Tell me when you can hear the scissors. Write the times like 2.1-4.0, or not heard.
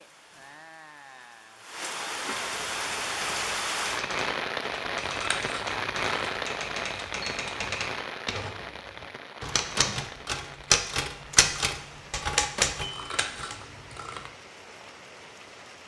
5.0-6.0, 12.9-14.3.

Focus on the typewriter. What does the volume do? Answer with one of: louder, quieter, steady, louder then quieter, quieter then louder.
louder.